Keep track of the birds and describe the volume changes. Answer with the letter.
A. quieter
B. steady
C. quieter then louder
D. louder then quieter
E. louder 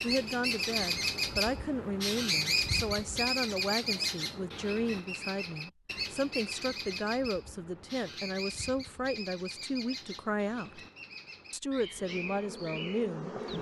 A.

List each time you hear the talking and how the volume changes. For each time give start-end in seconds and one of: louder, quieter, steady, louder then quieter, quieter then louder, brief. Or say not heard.
0.0-10.8 steady
11.5-13.3 brief.